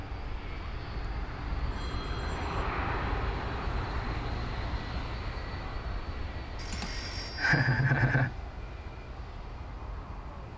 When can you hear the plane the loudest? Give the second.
3 s.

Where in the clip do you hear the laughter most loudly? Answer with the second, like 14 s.
8 s.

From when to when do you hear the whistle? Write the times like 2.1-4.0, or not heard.
not heard.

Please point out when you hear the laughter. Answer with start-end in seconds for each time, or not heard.
6.7-8.3.